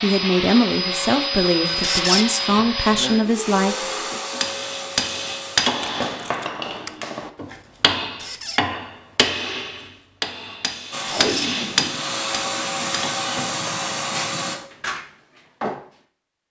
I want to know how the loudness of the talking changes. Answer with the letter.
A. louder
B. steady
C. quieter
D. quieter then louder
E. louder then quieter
B.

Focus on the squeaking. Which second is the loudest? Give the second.
2 s.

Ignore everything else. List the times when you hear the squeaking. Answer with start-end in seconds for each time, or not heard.
1.8-2.2, 8.2-8.7, 11.1-11.5.